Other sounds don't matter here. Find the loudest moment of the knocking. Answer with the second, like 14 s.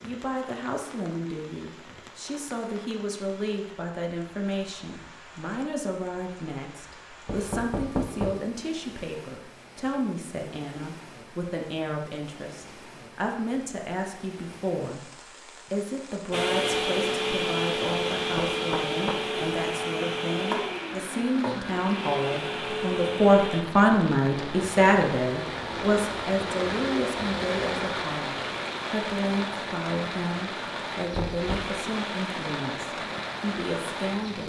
8 s.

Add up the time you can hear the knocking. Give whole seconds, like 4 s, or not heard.
3 s.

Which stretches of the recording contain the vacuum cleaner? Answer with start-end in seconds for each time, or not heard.
16.3-23.6.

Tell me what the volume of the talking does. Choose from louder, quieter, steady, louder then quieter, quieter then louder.
louder then quieter.